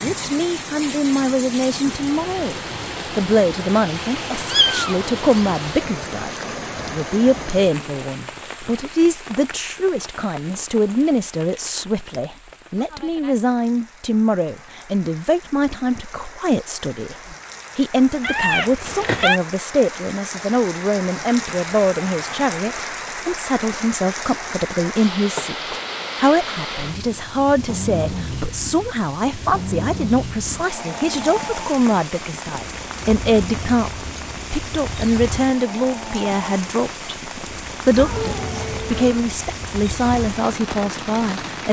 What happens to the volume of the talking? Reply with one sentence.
The loudness of the talking stays about the same.